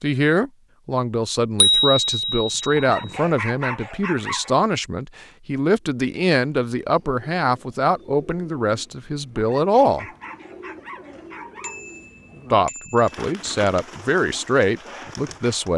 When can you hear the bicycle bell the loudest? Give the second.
2 s.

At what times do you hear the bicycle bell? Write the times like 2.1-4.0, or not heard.
1.6-3.1, 11.6-13.1.